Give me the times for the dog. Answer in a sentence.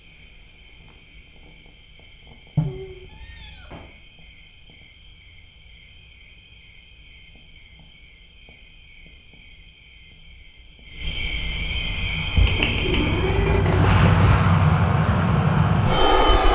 The dog can't be heard in this clip.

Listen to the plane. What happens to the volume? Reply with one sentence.
The loudness of the plane goes up.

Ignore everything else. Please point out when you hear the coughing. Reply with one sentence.
The coughing can't be heard in this clip.